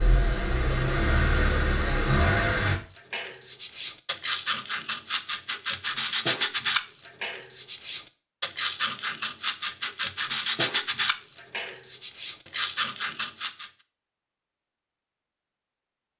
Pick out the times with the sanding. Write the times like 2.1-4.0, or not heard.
2.5-13.7.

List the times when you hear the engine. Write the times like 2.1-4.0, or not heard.
0.0-2.8.